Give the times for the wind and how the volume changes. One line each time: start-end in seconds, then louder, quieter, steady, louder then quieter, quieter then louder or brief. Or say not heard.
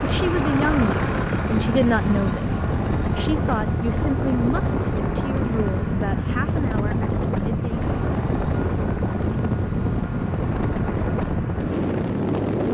0.0-12.7 steady.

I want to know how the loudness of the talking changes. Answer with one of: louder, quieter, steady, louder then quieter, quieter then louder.
quieter.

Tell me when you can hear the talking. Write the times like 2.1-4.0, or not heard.
0.0-7.9.